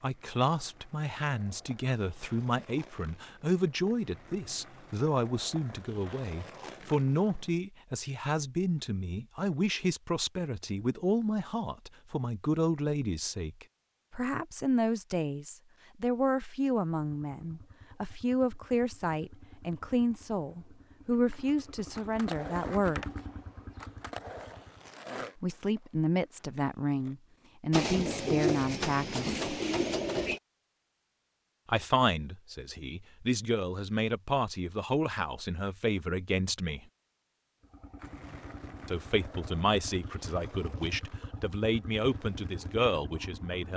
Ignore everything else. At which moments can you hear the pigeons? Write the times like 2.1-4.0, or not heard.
27.7-30.4.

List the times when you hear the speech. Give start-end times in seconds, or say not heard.
0.0-23.1, 25.4-29.4, 31.6-36.8, 38.9-43.7.